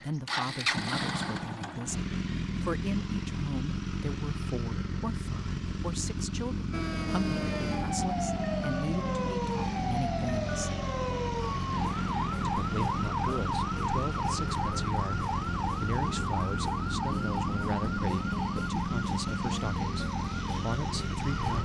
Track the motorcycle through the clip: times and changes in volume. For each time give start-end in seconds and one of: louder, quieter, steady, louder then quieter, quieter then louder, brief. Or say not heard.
0.0-21.6 steady.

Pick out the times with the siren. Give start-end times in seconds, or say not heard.
6.7-21.6.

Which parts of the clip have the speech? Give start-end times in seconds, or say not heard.
0.0-10.8, 12.4-21.6.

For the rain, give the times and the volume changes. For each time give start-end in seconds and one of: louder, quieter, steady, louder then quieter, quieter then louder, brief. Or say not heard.
not heard.